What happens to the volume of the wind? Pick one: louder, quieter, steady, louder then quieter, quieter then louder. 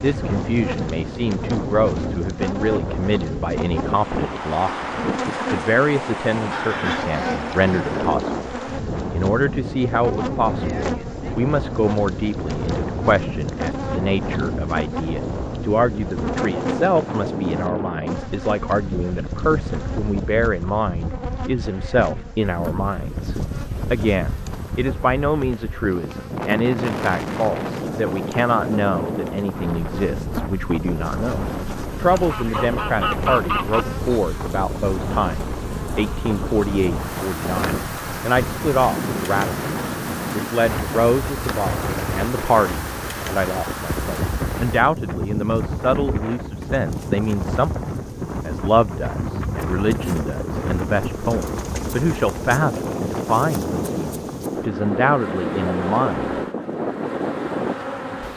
steady.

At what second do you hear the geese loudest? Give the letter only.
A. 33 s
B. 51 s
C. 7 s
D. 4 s
A.